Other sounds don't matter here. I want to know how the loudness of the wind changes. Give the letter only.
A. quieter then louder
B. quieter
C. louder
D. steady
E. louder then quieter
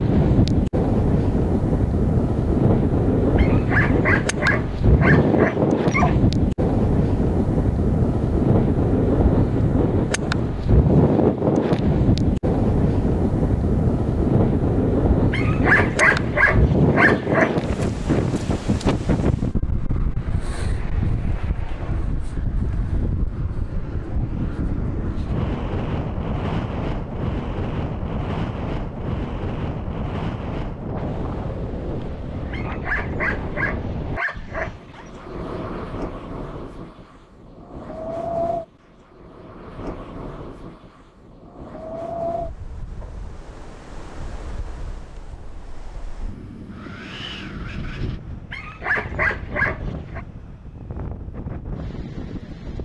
B.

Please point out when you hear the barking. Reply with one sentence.
You can hear the barking from 3.4 to 6.2 s, from 15.3 to 17.6 s, from 32.5 to 35.0 s and from 48.5 to 50.2 s.